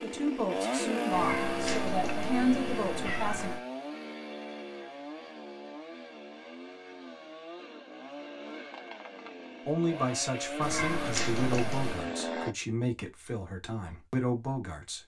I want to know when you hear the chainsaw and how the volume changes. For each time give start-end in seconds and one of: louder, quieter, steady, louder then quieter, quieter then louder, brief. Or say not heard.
0.0-12.6 quieter then louder.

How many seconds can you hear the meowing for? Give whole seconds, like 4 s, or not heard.
4 s.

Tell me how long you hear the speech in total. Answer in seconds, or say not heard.
9 s.